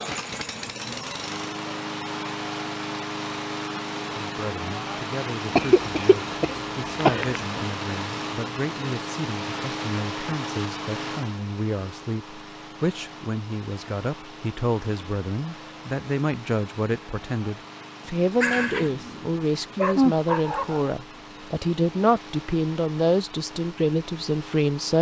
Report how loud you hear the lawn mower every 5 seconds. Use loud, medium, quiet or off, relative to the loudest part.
loud, loud, medium, medium, medium.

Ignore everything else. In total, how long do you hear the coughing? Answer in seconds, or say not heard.
2 s.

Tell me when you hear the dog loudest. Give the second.
20 s.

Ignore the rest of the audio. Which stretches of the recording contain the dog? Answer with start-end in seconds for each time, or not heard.
18.4-20.9.